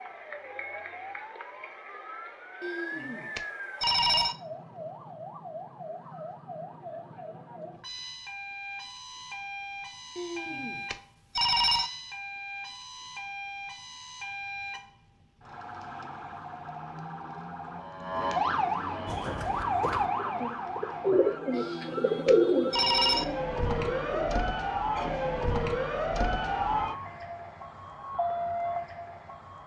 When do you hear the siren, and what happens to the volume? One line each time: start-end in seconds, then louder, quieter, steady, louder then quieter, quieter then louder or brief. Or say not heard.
0.0-29.6 louder.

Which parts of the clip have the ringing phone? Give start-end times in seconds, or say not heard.
2.6-4.3, 10.2-11.9, 21.5-23.2.